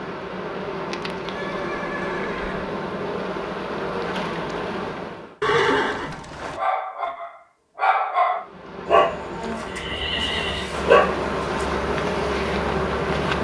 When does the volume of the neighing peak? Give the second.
6 s.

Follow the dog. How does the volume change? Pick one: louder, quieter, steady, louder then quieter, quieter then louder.
louder then quieter.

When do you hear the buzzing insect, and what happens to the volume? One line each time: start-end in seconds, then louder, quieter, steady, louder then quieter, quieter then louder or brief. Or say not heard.
0.0-5.3 steady
8.3-13.3 louder.